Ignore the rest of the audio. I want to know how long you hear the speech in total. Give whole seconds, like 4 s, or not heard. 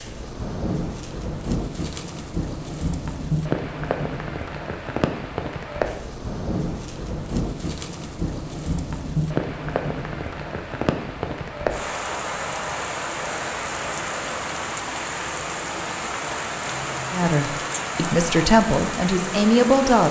3 s.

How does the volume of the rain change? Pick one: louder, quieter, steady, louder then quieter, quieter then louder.
steady.